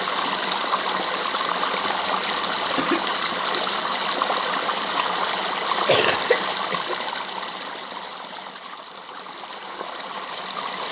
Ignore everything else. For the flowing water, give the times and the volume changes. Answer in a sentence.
You can hear the flowing water from 0.0 to 10.8 s, getting quieter.